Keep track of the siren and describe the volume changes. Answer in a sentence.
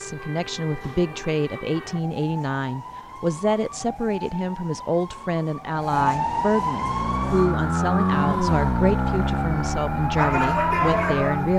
The loudness of the siren goes up.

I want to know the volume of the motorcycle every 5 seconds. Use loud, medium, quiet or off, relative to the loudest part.
off, loud, medium.